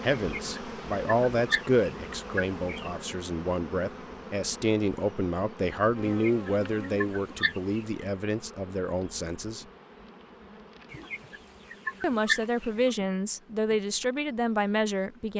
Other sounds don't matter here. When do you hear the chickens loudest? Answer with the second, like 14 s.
12 s.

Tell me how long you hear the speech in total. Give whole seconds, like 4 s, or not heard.
13 s.